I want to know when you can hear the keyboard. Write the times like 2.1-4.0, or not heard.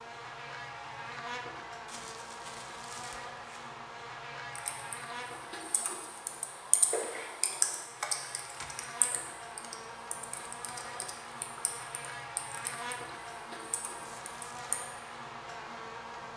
4.5-14.8.